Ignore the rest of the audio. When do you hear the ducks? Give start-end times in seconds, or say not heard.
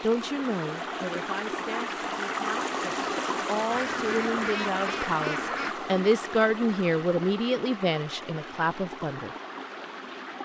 3.7-5.8.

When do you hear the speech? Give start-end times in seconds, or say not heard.
0.0-9.3.